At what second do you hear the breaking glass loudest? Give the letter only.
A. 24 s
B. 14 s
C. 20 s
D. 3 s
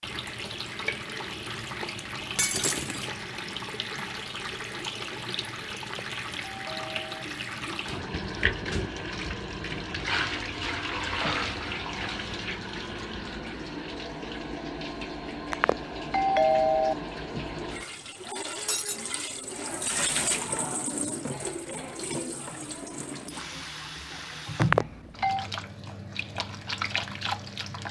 D.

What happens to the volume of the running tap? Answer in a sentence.
The volume of the running tap stays about the same.